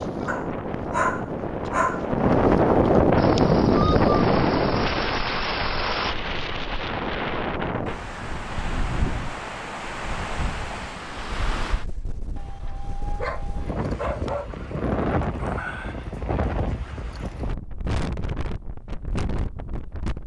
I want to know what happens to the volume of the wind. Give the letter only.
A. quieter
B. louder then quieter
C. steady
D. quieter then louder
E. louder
A.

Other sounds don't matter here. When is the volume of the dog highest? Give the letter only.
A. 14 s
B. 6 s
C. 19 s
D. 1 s
D.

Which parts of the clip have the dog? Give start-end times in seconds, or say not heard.
0.2-2.1, 12.3-14.7.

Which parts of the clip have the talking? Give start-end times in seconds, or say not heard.
not heard.